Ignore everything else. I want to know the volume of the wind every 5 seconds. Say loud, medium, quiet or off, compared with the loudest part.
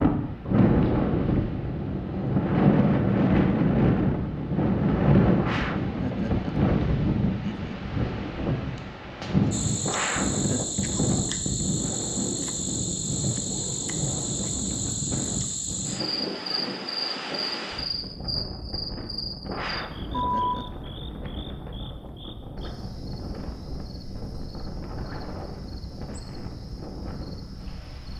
loud, loud, medium, quiet, quiet, quiet.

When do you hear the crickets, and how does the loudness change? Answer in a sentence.
You can hear the crickets from 9.5 to 28.1 s, getting quieter.